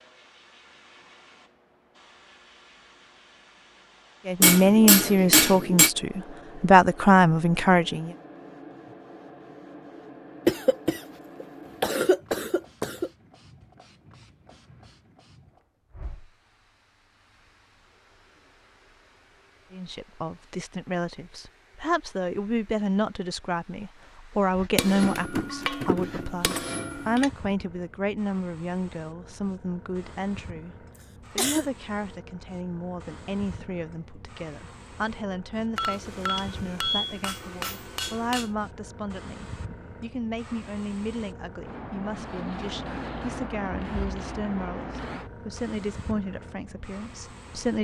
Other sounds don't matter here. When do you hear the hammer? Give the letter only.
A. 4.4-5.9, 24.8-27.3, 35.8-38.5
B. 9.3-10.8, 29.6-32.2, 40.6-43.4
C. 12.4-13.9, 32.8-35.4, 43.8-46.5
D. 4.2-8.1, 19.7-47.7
A.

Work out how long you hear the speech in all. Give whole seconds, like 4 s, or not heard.
32 s.